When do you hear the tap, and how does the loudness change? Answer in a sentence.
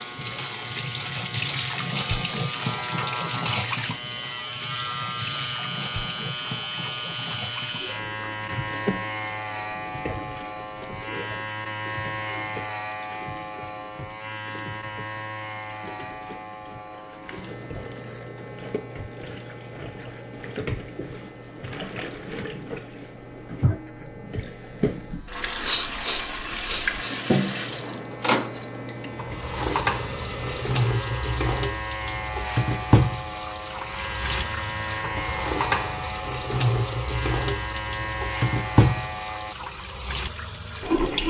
You can hear the tap from 0.0 to 41.2 s, getting quieter then louder.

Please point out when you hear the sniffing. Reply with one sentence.
You can hear the sniffing from 25.6 to 27.2 s.